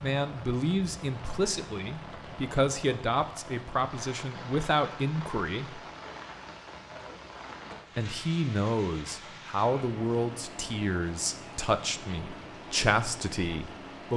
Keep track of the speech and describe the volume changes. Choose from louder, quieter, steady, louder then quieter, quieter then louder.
steady.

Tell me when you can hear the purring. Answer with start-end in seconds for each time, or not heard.
not heard.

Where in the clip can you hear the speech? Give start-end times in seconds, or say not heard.
0.0-5.8, 8.0-14.1.